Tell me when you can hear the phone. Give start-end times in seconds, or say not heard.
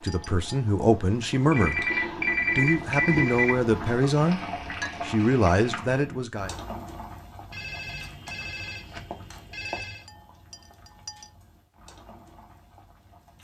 1.5-3.5, 7.5-10.1.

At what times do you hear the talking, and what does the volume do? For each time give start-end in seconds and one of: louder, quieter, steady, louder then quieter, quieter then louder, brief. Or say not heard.
0.0-4.4 quieter then louder
5.0-6.5 brief.